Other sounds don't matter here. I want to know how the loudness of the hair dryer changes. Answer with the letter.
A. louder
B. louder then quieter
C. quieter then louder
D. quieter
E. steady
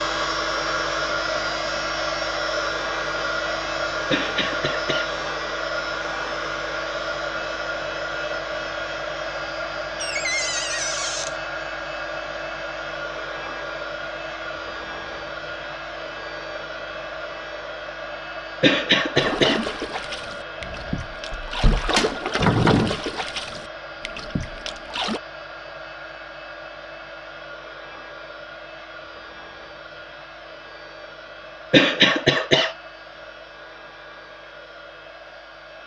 D.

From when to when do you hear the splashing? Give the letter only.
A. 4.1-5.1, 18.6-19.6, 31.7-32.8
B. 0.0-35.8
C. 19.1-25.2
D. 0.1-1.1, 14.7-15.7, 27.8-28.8
C.